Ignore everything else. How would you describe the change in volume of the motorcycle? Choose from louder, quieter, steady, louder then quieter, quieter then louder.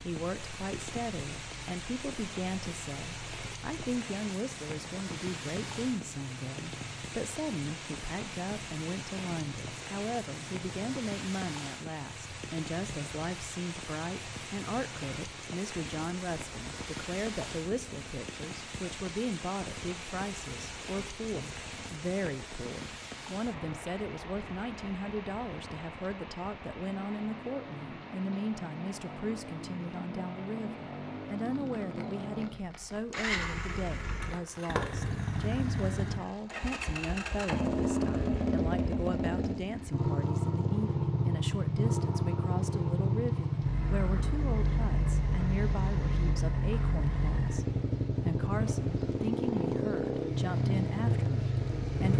louder.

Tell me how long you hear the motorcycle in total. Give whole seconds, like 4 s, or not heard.
52 s.